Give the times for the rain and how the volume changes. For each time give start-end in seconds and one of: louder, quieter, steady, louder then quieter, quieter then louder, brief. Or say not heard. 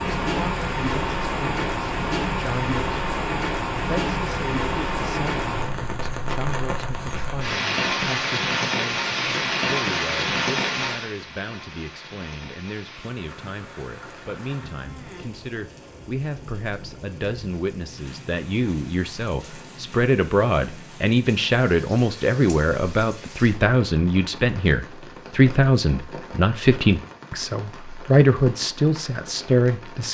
0.0-30.0 quieter.